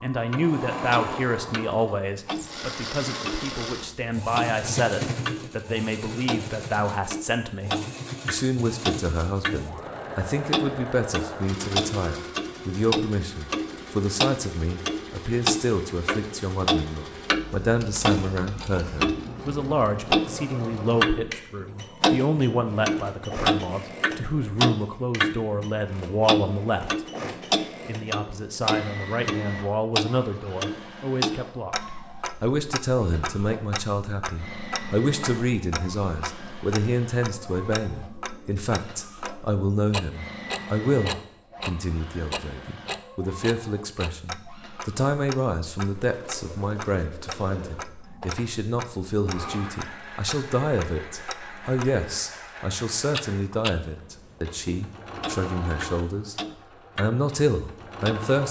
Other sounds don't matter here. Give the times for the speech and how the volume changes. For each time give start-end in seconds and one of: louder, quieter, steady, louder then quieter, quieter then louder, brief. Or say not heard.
0.0-27.1 steady
27.9-56.4 steady
57.0-58.4 brief.